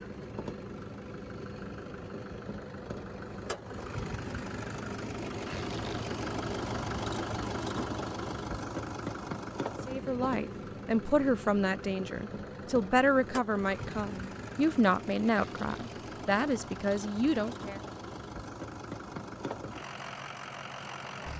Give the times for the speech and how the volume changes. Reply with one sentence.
The speech can be heard from 9.8 to 17.8 s, at a steady volume.